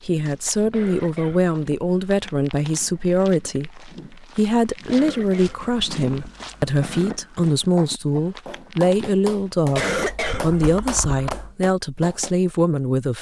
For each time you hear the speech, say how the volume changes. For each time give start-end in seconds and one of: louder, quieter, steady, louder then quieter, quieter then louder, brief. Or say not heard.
0.0-13.1 steady.